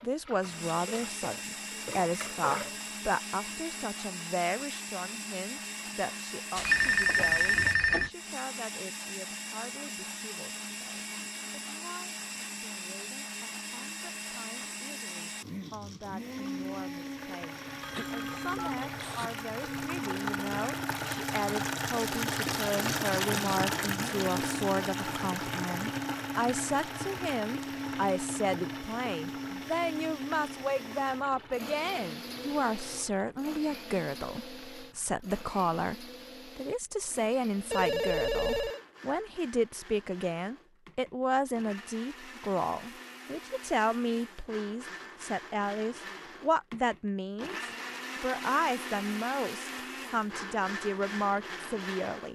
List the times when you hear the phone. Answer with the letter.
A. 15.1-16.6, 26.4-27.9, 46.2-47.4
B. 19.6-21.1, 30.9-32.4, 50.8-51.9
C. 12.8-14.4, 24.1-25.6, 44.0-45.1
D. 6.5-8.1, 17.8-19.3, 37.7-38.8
D.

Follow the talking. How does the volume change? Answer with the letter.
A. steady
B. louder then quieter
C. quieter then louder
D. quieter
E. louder
C.